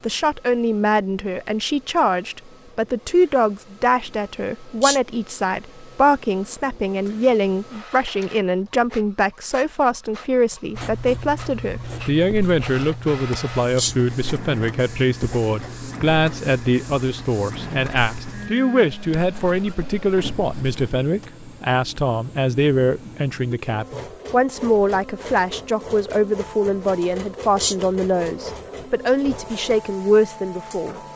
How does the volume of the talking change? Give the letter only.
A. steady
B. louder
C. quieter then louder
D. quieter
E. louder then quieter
A.